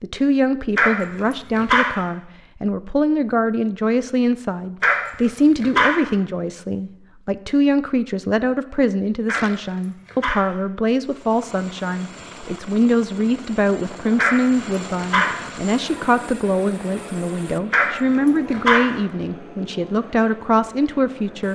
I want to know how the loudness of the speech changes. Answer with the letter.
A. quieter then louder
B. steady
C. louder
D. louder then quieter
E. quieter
B.